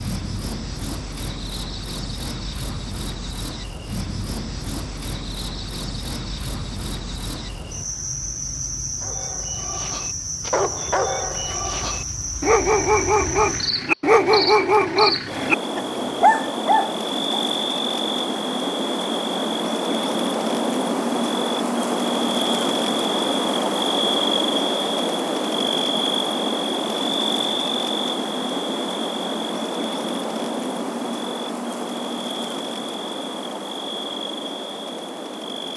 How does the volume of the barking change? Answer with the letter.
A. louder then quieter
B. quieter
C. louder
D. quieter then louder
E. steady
C.